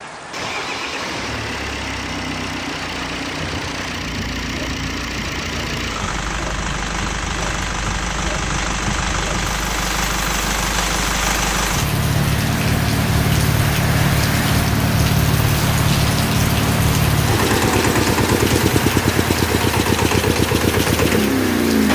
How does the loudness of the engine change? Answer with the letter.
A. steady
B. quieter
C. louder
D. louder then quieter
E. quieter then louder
C.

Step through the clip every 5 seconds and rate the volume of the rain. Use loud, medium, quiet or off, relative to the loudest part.
medium, medium, loud, loud, loud.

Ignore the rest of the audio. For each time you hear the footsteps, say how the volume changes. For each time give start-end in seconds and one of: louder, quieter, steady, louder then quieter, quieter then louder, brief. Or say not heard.
not heard.